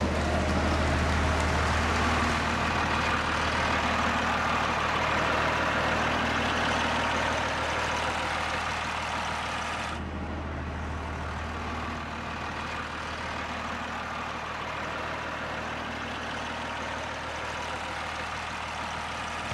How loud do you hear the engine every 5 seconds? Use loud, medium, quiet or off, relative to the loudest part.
loud, loud, medium, medium.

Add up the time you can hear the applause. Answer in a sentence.
You can hear the applause for 3 seconds altogether.